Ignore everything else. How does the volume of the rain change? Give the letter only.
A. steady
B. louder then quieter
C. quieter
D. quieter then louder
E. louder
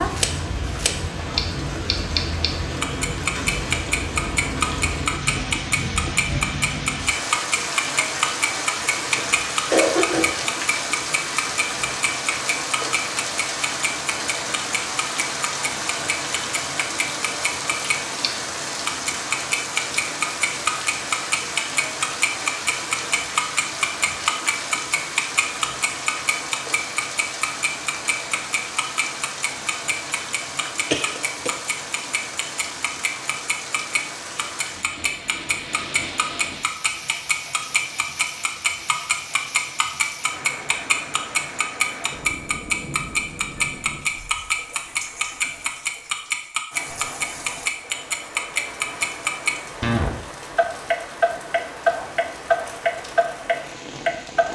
C.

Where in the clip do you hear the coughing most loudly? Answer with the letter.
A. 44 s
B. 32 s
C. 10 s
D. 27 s
C.